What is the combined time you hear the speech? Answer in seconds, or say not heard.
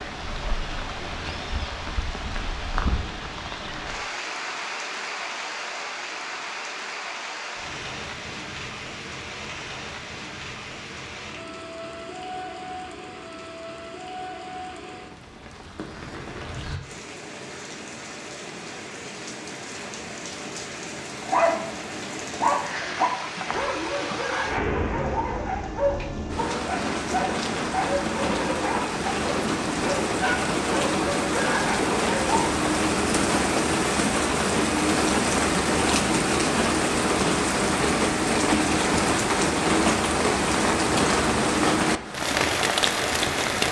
not heard.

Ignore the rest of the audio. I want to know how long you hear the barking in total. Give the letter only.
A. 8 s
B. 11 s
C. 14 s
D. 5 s
B.